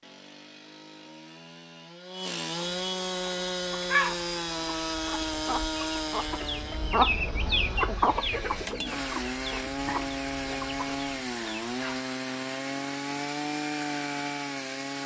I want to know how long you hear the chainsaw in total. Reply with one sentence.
The chainsaw can be heard for 15 seconds in total.